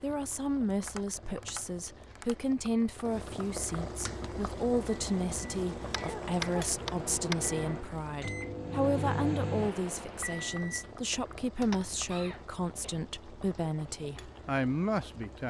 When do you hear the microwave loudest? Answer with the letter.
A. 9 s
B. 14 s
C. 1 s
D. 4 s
A.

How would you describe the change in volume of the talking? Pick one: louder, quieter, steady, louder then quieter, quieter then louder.
steady.